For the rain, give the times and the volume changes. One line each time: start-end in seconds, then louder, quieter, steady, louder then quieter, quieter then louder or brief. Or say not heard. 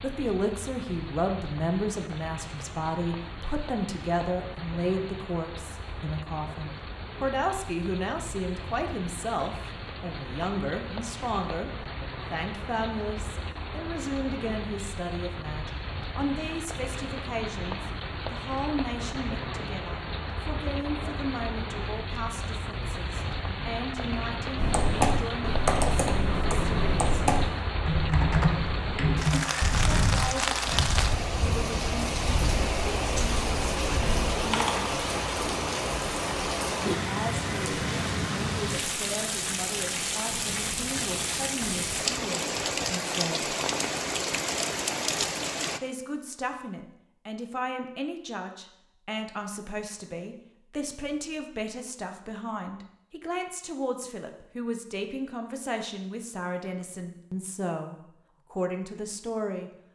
0.0-45.8 louder.